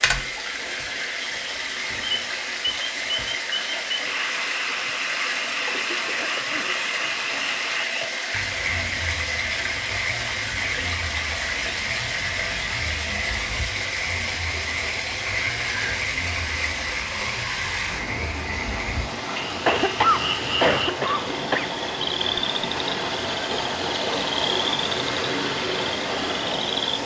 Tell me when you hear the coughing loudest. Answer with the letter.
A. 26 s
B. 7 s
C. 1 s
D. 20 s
D.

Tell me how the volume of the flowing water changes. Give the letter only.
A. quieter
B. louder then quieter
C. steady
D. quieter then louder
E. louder
C.